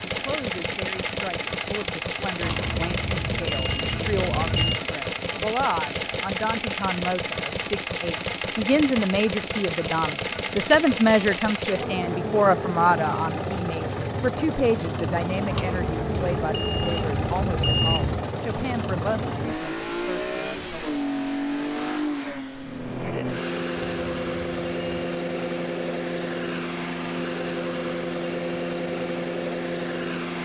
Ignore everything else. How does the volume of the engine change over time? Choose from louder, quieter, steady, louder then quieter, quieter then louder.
steady.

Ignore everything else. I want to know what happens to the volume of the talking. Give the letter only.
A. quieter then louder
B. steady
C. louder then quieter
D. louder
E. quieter
C.